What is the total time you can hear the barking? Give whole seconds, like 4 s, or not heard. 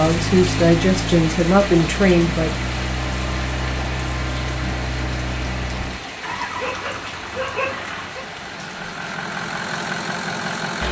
2 s.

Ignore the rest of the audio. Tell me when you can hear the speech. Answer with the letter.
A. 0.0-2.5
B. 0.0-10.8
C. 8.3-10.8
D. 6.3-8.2
A.